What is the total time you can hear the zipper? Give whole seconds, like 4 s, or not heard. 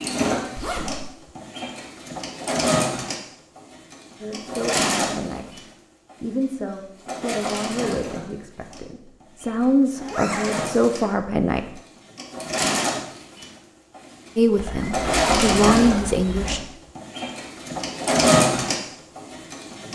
4 s.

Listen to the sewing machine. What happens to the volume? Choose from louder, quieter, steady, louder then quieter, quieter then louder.
quieter then louder.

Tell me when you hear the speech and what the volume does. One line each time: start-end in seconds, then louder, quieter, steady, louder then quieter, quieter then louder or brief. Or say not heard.
4.2-11.7 louder
14.3-16.6 brief.